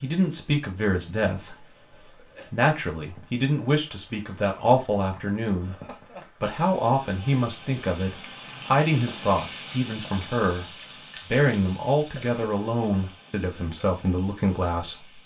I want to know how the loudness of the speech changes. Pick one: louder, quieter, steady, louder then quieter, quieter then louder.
steady.